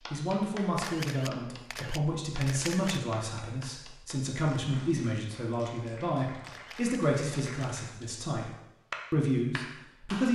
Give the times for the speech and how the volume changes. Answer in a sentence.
The speech can be heard from 0.1 to 8.5 s, at a steady volume; and briefly from 9.1 to 10.3 s.